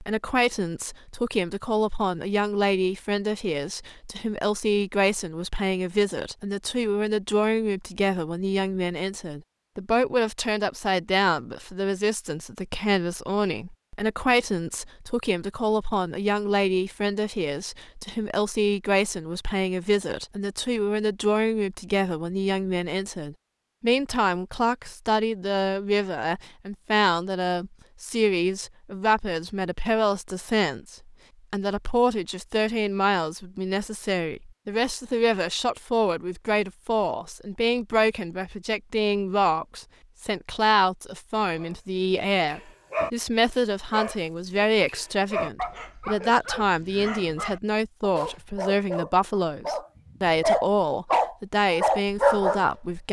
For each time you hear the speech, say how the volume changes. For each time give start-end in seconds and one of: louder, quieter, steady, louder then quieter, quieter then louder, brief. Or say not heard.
0.0-53.0 steady.